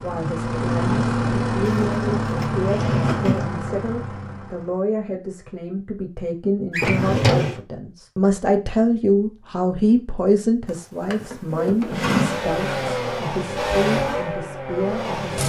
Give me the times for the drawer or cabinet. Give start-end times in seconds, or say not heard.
1.6-3.5, 6.7-7.6, 10.7-13.2.